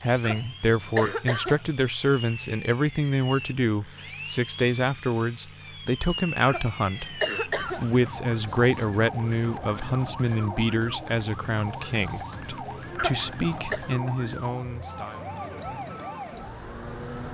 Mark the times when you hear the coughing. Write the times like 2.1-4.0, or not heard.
0.2-1.6, 6.5-7.9, 12.9-13.8.